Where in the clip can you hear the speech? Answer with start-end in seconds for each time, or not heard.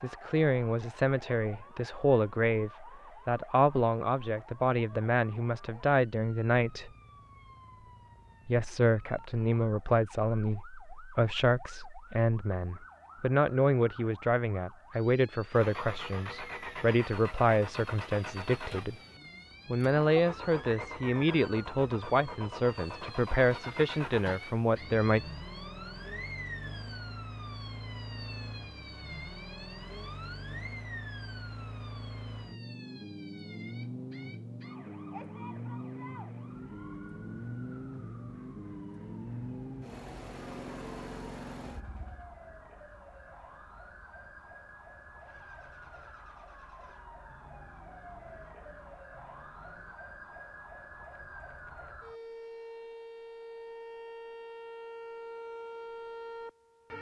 0.0-6.9, 8.4-18.9, 19.6-25.2.